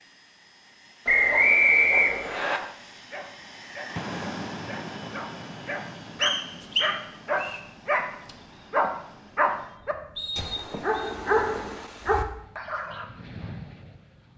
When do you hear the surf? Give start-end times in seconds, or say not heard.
not heard.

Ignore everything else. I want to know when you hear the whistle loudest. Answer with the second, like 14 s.
2 s.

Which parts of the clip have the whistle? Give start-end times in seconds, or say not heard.
1.1-2.6, 6.2-7.6, 10.2-11.1.